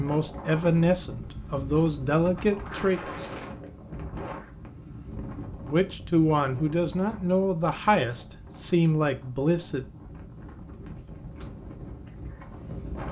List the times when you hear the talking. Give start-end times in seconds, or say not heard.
0.0-3.3, 5.7-9.8.